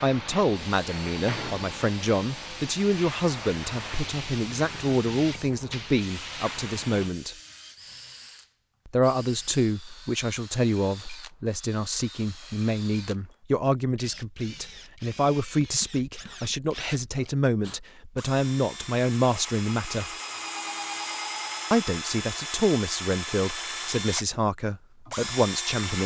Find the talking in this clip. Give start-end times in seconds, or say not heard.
0.0-7.3, 8.8-20.1, 21.7-26.0.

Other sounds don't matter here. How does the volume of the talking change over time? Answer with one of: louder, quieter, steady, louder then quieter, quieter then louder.
steady.